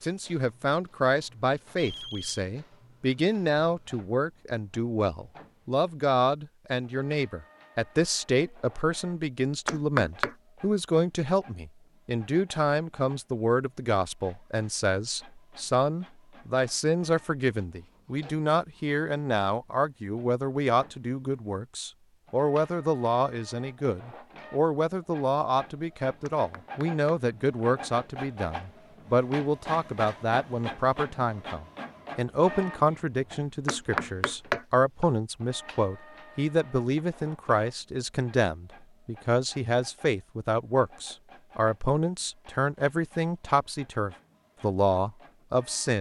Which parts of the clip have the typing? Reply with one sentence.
You can't hear the typing here.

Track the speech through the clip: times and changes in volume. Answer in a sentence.
The speech can be heard from 0.0 to 45.9 s, at a steady volume.